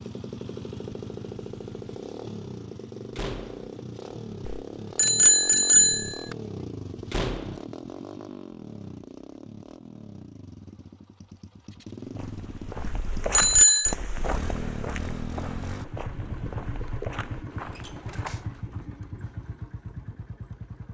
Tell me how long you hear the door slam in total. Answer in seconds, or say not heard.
2 s.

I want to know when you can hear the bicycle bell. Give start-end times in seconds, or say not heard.
4.5-6.2, 12.8-13.9.